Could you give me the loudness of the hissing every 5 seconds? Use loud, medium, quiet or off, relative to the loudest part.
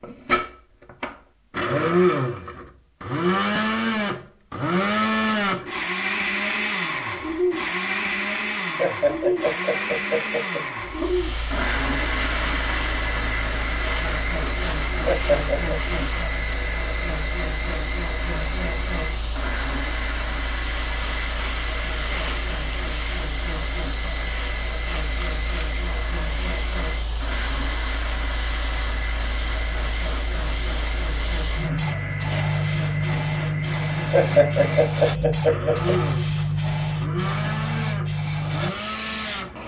off, off, medium, medium, medium, medium, loud, loud.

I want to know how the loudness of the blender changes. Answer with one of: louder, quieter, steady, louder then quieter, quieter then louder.
quieter.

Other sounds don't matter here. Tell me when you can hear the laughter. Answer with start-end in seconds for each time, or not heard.
8.8-11.1, 15.1-15.8, 34.1-36.0.